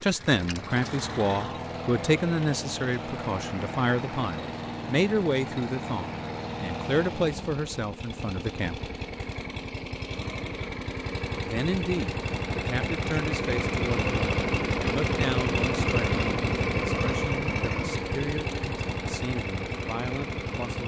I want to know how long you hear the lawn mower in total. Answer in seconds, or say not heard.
21 s.